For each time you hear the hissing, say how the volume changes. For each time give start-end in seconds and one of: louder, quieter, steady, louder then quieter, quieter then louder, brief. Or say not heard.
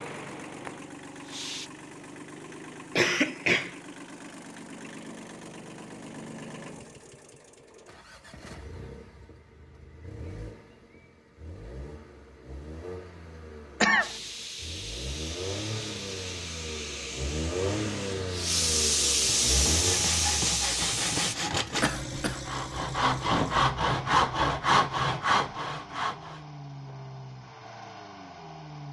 0.0-1.7 brief
14.0-21.4 louder.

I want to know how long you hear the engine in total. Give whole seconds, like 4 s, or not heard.
29 s.